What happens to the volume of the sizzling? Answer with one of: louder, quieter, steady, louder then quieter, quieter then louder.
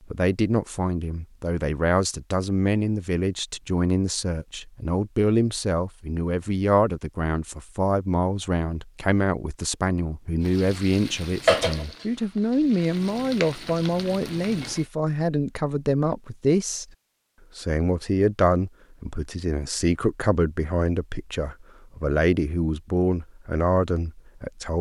quieter then louder.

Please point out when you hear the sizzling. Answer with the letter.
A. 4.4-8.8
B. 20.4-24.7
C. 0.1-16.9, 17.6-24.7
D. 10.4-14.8
D.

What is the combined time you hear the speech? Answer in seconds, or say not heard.
24 s.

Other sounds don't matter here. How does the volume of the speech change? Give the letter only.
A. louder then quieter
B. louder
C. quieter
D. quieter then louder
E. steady
E.